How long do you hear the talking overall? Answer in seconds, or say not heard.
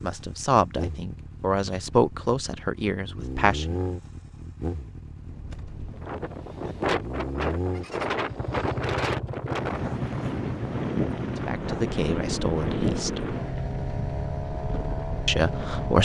6 s.